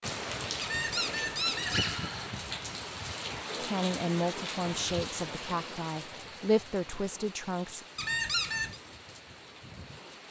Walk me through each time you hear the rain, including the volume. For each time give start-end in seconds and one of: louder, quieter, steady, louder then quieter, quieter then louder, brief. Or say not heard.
0.0-10.2 quieter.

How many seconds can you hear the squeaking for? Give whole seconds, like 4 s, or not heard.
2 s.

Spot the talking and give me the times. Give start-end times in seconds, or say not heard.
3.5-7.8.